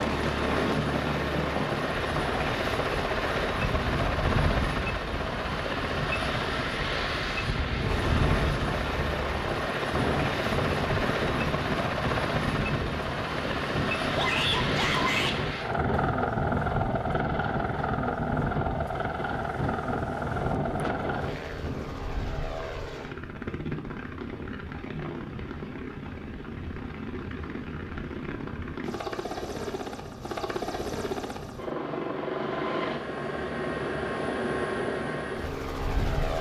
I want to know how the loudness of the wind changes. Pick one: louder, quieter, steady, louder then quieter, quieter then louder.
steady.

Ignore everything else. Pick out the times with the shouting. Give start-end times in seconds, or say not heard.
14.2-15.3.